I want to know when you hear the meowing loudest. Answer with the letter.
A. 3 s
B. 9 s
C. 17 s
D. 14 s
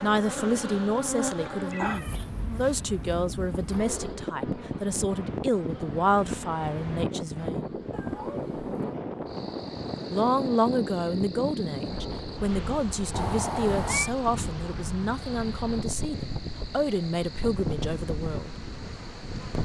D.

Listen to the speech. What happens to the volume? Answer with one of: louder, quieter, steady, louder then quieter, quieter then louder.
steady.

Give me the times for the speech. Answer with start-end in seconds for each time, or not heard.
0.0-7.8, 10.1-18.6.